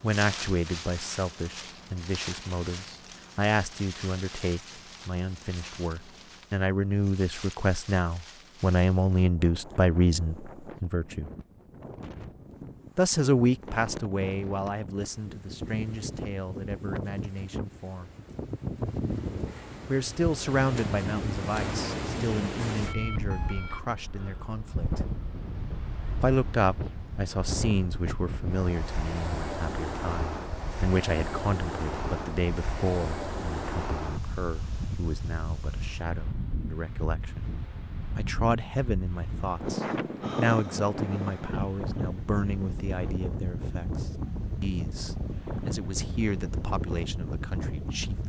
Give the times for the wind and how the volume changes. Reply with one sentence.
The wind can be heard from 0.0 to 48.2 s, getting louder.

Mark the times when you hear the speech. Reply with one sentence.
You can hear the speech from 0.0 to 11.2 s, from 12.9 to 18.1 s, from 19.9 to 25.0 s, from 26.2 to 37.5 s and from 38.1 to 48.2 s.